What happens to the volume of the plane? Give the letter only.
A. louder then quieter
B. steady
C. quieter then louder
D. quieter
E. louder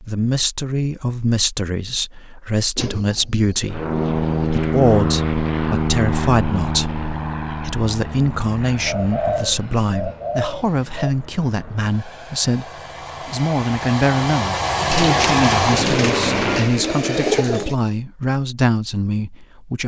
C.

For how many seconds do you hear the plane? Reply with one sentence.
The plane can be heard for 13 seconds in total.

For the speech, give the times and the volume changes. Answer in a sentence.
The speech can be heard from 0.0 to 19.8 s, at a steady volume.